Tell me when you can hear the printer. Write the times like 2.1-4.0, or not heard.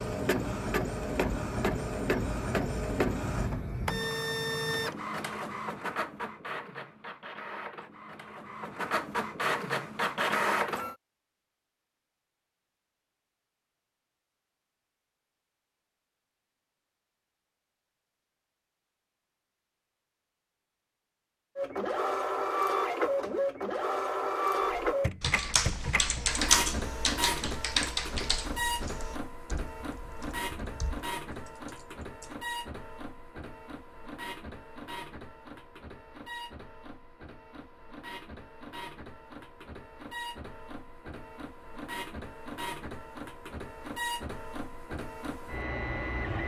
0.0-10.9, 21.6-46.4.